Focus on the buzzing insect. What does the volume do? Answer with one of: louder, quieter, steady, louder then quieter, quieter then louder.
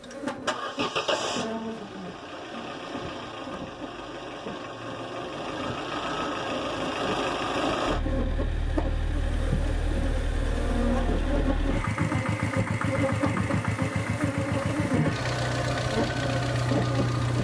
louder.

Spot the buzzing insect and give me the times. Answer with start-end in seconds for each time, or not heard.
0.0-17.4.